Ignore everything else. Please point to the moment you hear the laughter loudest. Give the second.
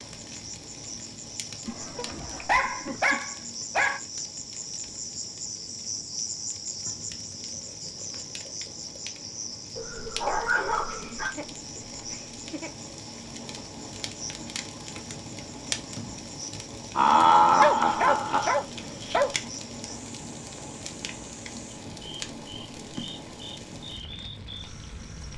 17 s.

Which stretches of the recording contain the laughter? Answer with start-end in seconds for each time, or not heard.
1.6-3.2, 10.2-12.7, 16.9-18.6.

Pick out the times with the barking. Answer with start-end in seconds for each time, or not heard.
1.9-4.0, 9.8-11.3, 17.6-19.3.